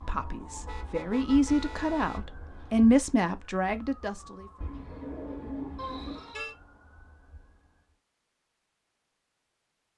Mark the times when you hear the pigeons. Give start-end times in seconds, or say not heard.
4.6-6.2.